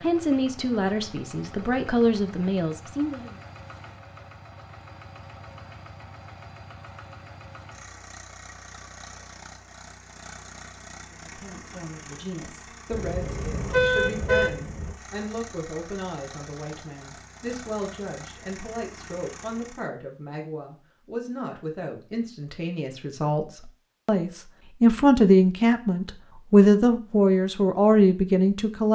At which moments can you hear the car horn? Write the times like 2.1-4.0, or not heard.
12.9-14.9.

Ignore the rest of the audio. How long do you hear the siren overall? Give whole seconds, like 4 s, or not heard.
not heard.